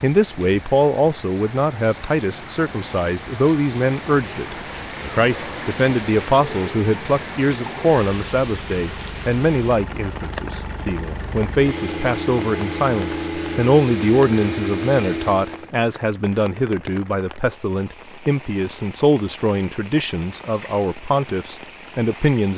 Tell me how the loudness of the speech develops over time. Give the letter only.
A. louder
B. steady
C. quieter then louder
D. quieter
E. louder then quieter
B.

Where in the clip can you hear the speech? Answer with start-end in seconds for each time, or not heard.
0.0-22.5.